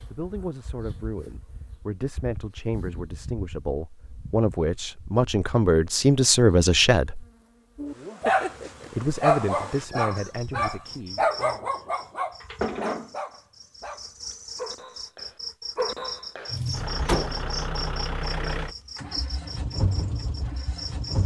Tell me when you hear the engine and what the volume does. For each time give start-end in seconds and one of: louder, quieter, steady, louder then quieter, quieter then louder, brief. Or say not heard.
16.5-21.2 quieter.